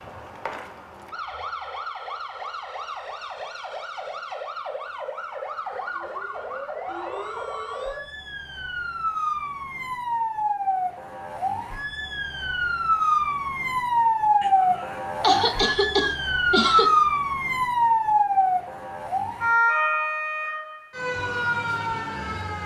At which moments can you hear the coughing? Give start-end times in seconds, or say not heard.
14.4-16.9.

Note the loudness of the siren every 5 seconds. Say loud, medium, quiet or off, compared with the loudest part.
quiet, medium, loud, loud, medium.